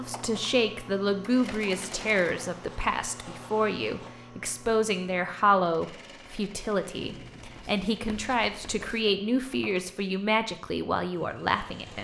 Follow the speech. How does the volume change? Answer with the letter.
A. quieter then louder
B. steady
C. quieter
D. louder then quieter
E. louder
B.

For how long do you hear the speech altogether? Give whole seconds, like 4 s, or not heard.
12 s.